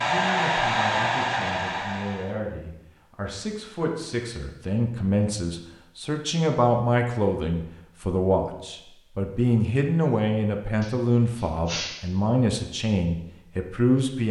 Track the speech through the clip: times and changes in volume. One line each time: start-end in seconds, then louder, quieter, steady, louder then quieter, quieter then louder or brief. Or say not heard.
0.0-14.2 louder.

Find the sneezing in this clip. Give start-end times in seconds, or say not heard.
10.8-12.1.